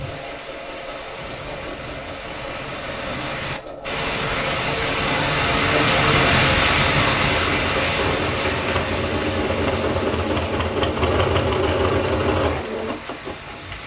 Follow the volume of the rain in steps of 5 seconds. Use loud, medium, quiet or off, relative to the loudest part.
medium, loud, quiet.